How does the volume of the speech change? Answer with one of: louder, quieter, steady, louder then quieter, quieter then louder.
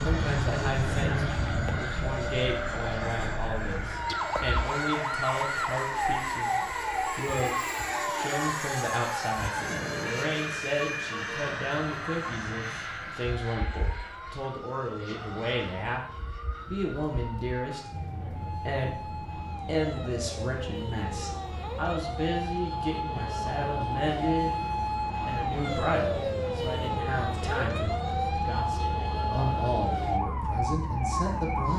steady.